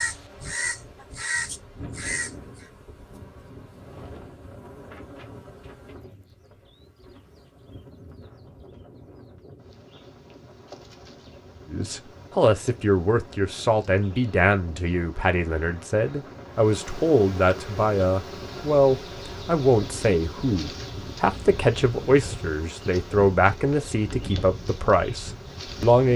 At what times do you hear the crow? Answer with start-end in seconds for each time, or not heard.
0.0-2.6.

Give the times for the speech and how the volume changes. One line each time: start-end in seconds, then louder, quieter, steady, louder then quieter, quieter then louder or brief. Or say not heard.
11.7-26.1 steady.